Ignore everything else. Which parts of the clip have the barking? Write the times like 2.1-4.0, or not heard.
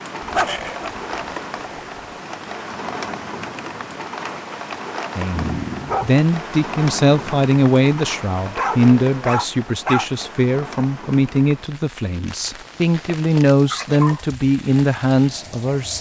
0.2-2.0, 5.3-6.2, 8.4-10.2, 12.2-14.2.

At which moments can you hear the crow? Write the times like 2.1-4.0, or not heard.
not heard.